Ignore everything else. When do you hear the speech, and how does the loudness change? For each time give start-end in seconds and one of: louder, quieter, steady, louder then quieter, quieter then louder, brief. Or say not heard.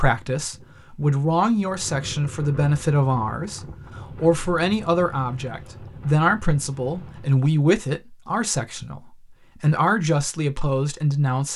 0.0-11.5 steady.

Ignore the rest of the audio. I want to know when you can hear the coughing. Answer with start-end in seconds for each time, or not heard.
not heard.